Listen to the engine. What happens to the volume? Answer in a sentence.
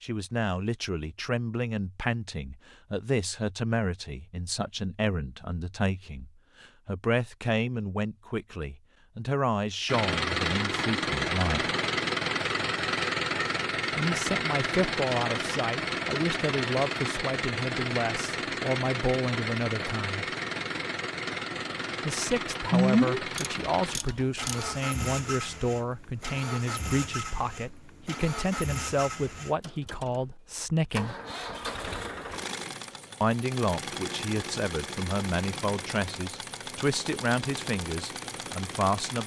The volume of the engine goes down.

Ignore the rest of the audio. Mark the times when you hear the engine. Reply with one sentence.
You can hear the engine from 9.8 to 39.2 s.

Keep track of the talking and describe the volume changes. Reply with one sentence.
The loudness of the talking stays about the same.